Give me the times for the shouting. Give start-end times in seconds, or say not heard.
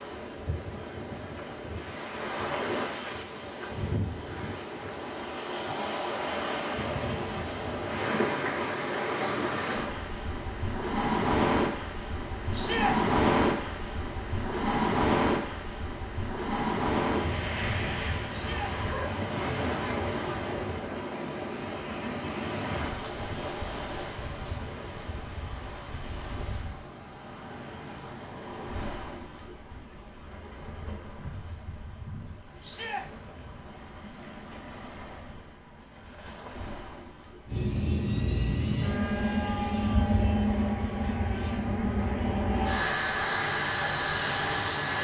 12.5-12.9, 18.3-18.8, 32.6-33.0.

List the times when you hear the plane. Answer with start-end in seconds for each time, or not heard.
37.5-45.0.